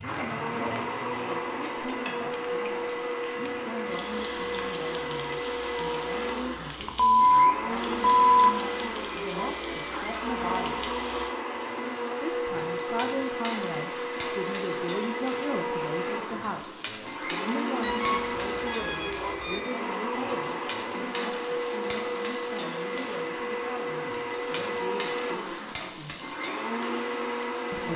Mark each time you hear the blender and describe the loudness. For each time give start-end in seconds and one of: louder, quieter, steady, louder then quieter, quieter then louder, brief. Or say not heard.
0.0-27.9 steady.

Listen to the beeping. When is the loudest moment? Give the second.
7 s.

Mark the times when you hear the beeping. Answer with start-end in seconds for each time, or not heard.
6.8-8.2, 17.8-19.6.